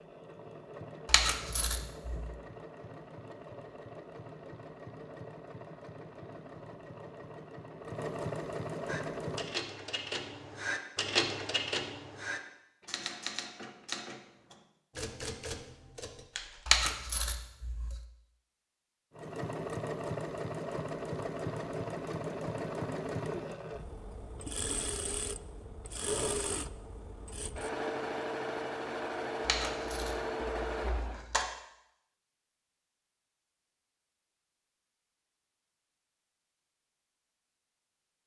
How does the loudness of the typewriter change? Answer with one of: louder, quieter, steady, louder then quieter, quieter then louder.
louder then quieter.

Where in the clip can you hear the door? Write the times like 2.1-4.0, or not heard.
not heard.